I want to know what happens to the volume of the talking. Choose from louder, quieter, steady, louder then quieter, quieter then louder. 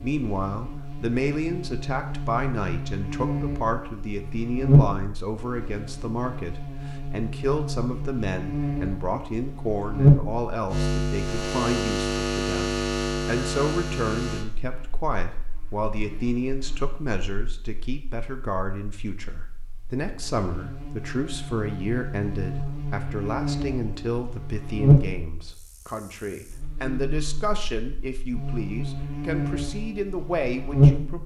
steady.